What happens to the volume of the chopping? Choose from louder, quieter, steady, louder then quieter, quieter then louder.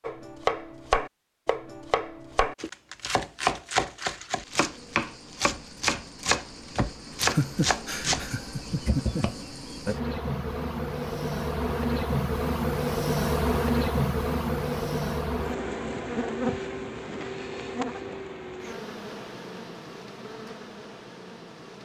steady.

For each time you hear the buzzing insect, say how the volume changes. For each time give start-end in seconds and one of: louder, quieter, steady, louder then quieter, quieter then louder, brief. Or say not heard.
4.3-21.8 louder then quieter.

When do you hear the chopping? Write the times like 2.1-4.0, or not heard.
0.0-9.3.